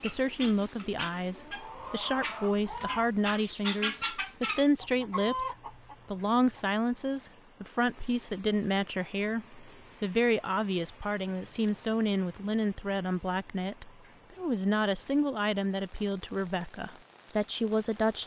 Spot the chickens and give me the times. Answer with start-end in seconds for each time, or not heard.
0.0-6.7.